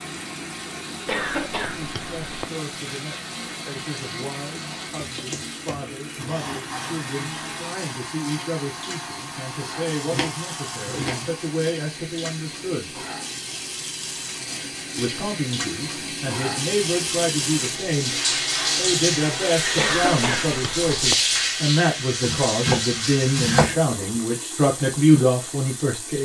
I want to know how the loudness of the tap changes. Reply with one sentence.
The loudness of the tap goes up.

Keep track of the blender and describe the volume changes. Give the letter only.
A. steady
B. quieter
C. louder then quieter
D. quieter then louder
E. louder
A.